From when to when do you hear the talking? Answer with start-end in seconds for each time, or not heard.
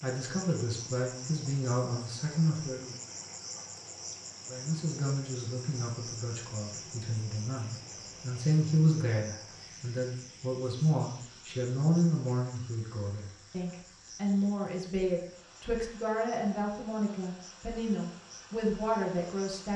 0.0-3.0, 4.5-19.7.